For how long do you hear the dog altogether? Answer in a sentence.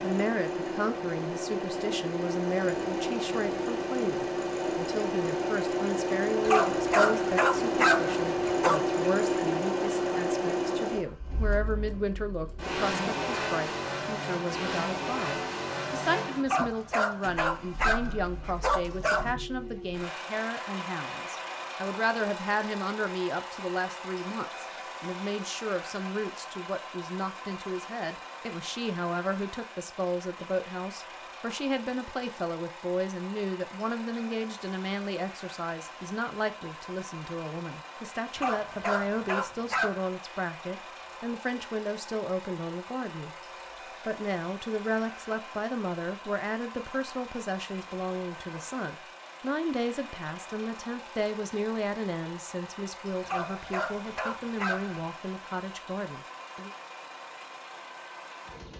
You can hear the dog for 9 seconds altogether.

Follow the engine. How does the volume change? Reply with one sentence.
The loudness of the engine goes down.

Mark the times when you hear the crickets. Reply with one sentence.
You can't hear the crickets here.